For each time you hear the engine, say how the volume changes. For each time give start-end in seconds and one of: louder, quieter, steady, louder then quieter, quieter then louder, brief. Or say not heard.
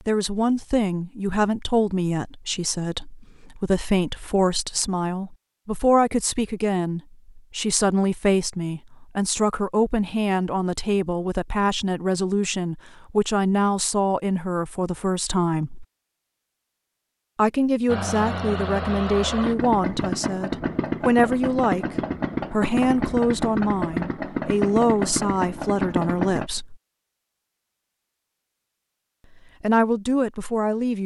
17.9-26.5 steady.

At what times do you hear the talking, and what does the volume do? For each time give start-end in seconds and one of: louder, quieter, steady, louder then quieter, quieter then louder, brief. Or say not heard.
0.1-15.8 steady
17.4-26.8 steady
29.6-31.0 brief.